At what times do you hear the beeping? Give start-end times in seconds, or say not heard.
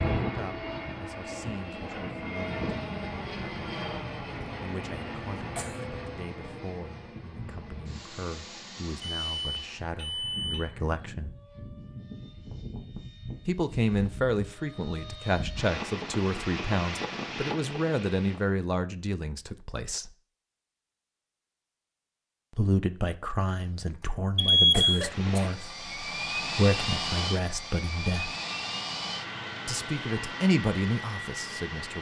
9.0-10.8, 24.4-25.0.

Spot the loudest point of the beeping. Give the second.
25 s.